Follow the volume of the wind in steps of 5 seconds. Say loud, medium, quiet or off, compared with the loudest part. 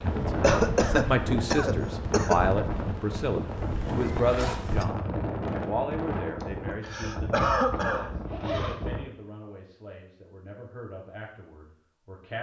loud, loud, off.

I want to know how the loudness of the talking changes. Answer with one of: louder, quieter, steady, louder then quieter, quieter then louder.
quieter.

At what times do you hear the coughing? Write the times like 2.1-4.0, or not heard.
0.4-2.4, 6.4-8.2.